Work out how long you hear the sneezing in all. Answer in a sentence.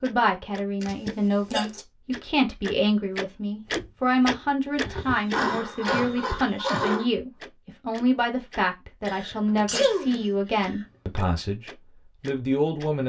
The sneezing can be heard for 5 seconds in total.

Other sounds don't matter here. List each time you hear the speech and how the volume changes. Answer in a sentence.
The speech can be heard from 0.0 to 13.0 s, at a steady volume.